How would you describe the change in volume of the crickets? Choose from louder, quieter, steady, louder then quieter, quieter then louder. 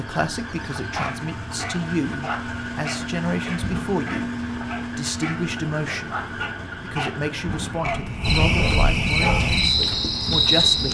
louder.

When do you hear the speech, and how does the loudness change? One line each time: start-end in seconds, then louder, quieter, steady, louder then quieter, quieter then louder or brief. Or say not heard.
0.0-10.8 steady.